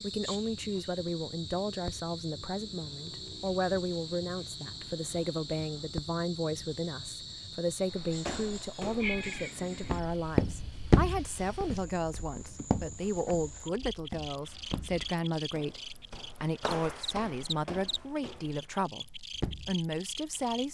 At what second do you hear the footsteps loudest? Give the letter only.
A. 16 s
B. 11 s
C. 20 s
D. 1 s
B.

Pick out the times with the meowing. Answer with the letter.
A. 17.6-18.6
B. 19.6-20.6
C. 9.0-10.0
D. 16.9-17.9
C.